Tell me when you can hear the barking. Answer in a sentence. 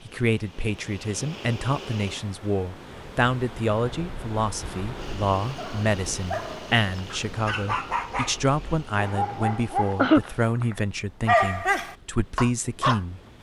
You can hear the barking from 5.5 to 13.0 s.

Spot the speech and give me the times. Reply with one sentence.
The speech can be heard from 0.0 to 13.2 s.